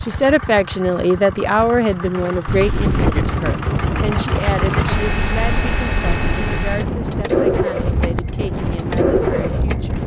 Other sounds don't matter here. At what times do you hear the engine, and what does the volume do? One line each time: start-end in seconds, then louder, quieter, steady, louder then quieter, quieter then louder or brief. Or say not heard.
0.0-10.0 louder.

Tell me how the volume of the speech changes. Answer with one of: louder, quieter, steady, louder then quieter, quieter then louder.
quieter.